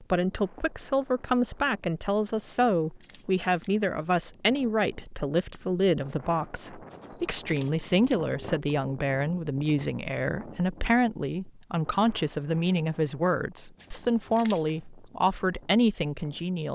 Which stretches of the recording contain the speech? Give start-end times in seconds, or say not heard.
0.0-16.7.